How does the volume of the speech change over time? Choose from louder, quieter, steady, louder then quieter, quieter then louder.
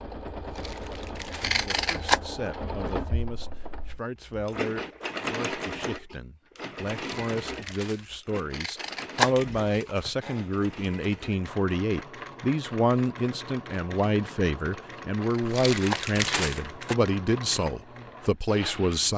louder.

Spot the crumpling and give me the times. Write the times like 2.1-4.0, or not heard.
0.4-1.6, 7.0-8.2, 15.4-16.9.